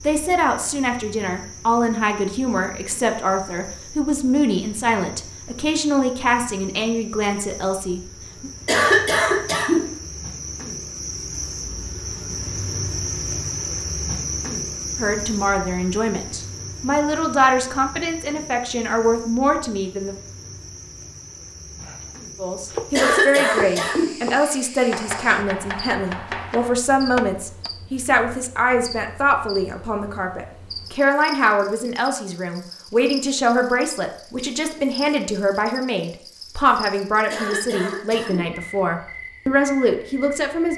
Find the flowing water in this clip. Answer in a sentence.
The flowing water can't be heard in this clip.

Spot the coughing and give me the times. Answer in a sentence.
The coughing can be heard from 8.7 to 9.9 s, from 22.9 to 24.1 s and from 37.3 to 38.5 s.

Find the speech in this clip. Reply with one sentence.
The speech can be heard from 0.0 to 8.5 s, from 14.9 to 20.1 s and from 22.4 to 40.7 s.